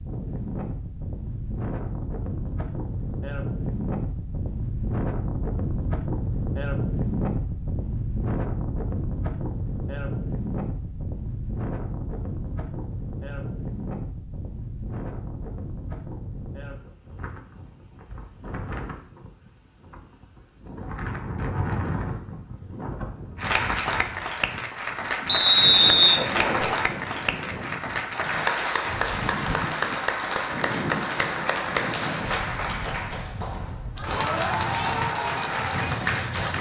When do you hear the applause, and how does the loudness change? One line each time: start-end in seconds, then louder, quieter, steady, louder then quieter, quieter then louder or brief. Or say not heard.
23.4-36.5 steady.